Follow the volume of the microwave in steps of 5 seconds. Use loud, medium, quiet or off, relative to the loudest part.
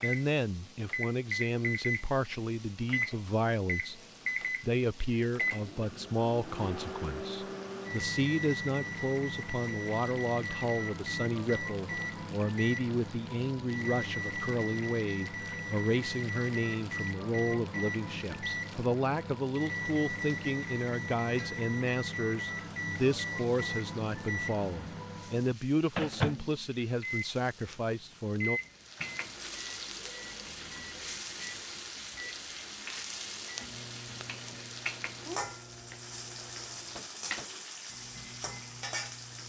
loud, loud, loud, loud, loud, loud, quiet, quiet.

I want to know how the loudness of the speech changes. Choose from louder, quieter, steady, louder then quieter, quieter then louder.
steady.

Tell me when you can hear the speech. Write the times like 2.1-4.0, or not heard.
0.0-4.0, 4.6-28.6.